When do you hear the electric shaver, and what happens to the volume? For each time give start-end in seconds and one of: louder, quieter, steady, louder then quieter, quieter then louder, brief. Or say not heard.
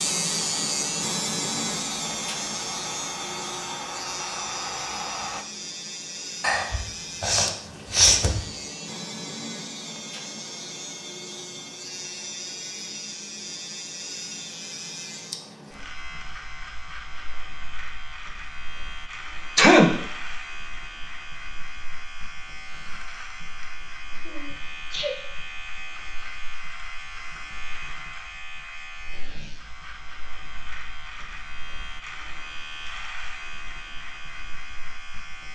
0.0-35.5 quieter.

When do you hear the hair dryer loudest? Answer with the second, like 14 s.
5 s.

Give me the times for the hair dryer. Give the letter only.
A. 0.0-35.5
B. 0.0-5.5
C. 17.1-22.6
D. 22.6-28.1
B.